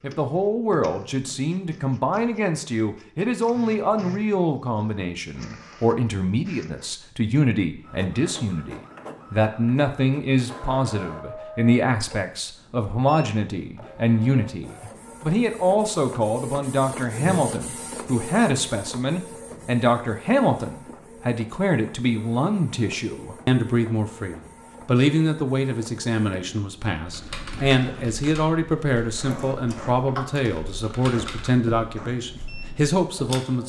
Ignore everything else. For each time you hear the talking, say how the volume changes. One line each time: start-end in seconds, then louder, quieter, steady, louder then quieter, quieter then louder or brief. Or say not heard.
0.0-33.6 steady.